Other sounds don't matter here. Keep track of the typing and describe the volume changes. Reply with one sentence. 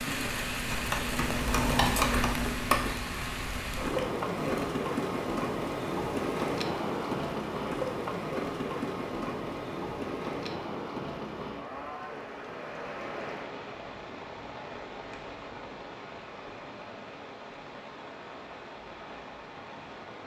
The loudness of the typing goes up, then down.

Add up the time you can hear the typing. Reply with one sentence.
You can hear the typing for 5 seconds altogether.